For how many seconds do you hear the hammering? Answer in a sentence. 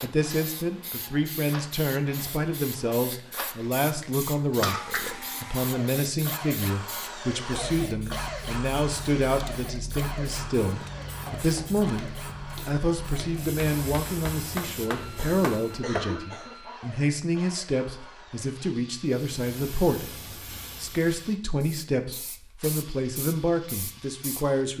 The hammering can be heard for 5 seconds in total.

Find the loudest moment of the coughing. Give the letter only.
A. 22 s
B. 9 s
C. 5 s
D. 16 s
C.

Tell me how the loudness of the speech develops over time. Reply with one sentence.
The loudness of the speech stays about the same.